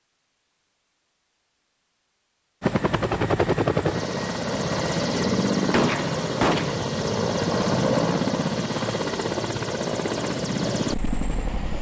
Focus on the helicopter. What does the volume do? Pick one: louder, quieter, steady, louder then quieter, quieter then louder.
steady.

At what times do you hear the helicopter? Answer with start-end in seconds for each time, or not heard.
2.6-11.7.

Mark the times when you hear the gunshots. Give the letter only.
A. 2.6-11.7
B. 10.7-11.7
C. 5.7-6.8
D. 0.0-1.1
C.